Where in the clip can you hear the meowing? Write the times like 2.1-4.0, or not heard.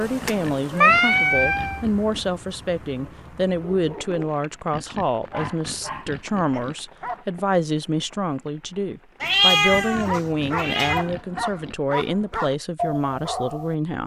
0.2-1.8, 9.2-11.1.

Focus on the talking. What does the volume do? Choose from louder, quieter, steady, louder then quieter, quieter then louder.
steady.